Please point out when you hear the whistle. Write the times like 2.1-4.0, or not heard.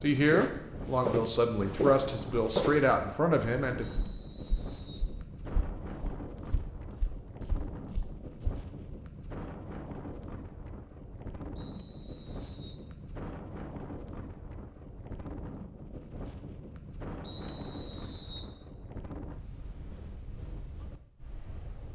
3.8-5.1, 11.6-12.8, 17.2-18.6.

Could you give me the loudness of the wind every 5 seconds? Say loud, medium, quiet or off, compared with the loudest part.
loud, loud, loud, loud, medium.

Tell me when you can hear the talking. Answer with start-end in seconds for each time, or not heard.
0.0-3.9.